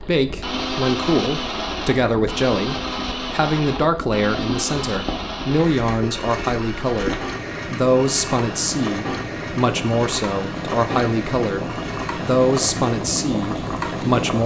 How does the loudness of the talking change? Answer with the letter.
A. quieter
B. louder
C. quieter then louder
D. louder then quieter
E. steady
E.